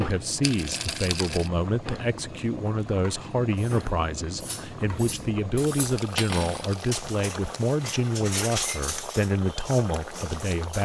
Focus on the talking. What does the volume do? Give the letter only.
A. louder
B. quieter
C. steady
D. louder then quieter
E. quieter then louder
C.